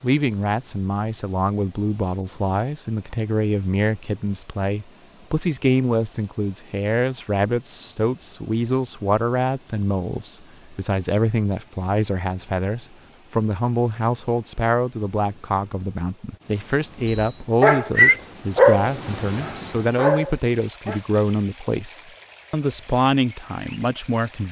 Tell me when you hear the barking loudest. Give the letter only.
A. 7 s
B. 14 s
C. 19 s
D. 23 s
C.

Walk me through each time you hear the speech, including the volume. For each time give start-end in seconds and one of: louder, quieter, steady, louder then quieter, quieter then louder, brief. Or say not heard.
0.0-24.4 steady.